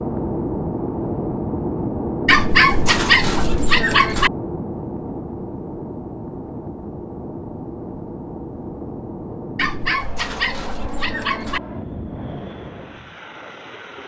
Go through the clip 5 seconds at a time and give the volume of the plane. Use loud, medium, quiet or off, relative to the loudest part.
loud, medium, medium.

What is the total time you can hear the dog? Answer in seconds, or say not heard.
4 s.